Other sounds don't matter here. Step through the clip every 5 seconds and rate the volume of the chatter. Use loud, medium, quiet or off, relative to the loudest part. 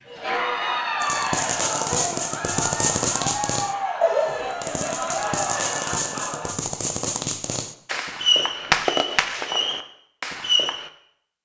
loud, loud, off.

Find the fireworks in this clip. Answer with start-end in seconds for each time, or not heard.
1.0-10.9.